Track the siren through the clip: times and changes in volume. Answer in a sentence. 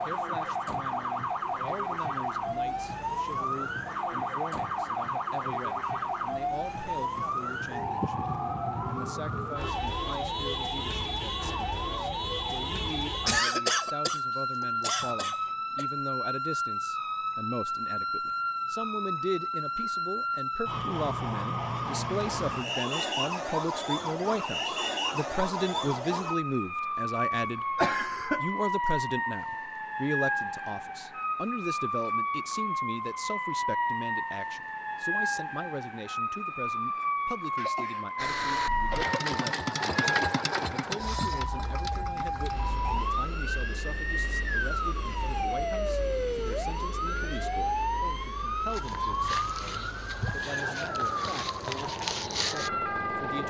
You can hear the siren from 0.0 to 53.4 s, at a steady volume.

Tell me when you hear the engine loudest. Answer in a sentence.
The volume of the engine peaks at 40 seconds.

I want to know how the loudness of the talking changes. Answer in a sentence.
The loudness of the talking goes up, then down.